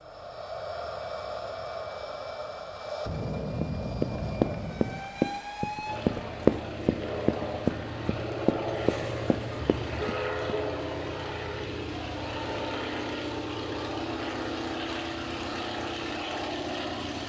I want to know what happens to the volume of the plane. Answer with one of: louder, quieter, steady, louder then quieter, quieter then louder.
steady.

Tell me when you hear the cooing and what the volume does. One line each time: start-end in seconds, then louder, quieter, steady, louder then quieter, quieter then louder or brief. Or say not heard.
not heard.